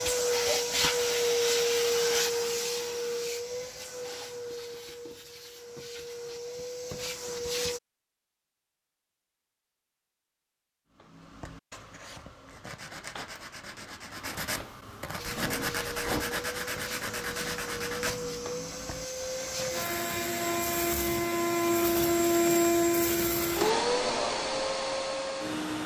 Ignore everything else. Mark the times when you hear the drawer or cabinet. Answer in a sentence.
You can hear the drawer or cabinet from 15.2 to 16.3 s.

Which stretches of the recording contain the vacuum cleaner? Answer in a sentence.
The vacuum cleaner can be heard from 0.0 to 7.8 s and from 15.2 to 25.8 s.